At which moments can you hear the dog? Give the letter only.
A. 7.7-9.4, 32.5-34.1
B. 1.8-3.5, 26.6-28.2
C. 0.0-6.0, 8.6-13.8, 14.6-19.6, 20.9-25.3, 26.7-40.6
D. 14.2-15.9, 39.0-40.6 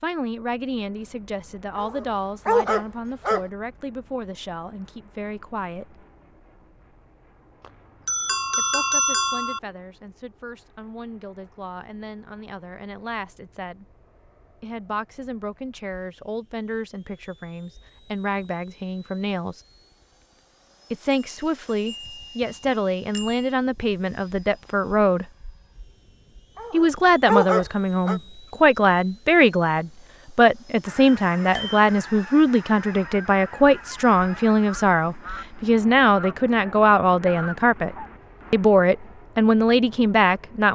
B.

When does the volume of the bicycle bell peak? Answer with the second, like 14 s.
9 s.